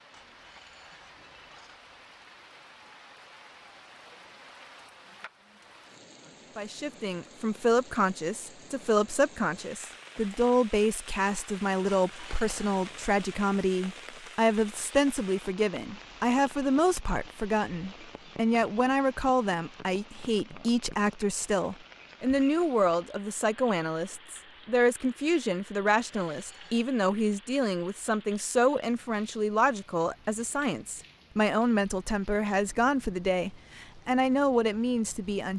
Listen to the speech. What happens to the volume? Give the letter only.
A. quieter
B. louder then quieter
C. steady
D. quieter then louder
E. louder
C.